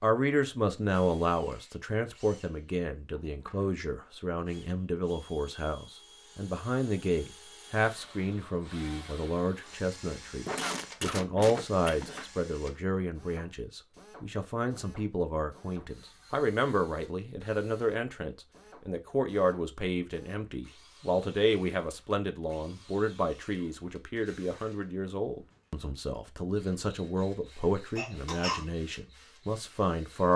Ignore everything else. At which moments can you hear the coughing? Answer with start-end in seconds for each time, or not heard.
10.4-12.2, 27.9-28.6.